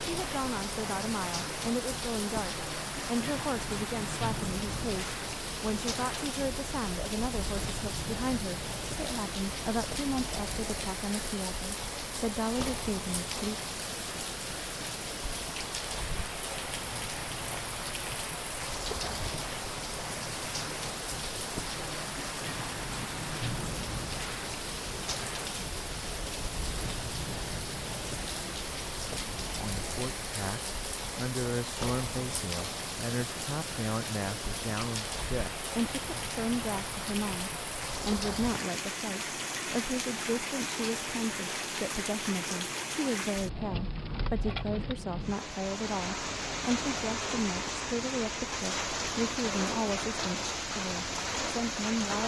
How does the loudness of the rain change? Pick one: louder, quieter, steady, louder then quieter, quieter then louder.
steady.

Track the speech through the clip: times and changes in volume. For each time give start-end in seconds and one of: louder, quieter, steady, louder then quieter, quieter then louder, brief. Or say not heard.
0.0-13.6 steady
29.6-52.2 steady.